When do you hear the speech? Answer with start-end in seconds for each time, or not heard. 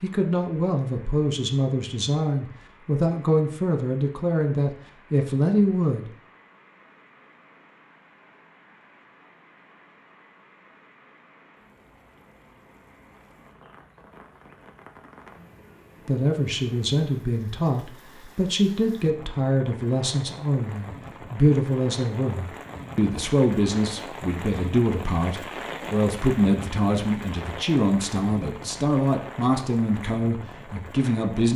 0.0-6.1, 16.1-31.5.